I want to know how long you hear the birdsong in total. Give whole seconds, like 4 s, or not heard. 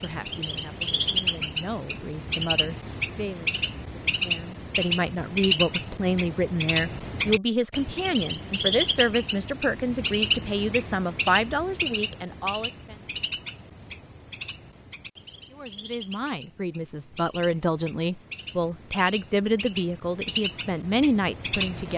22 s.